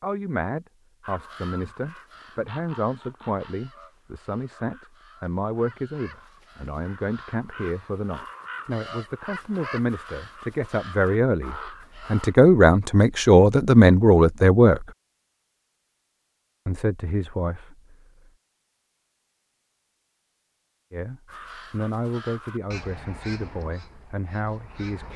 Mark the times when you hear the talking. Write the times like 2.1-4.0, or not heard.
0.0-14.8, 16.6-18.1, 20.9-25.1.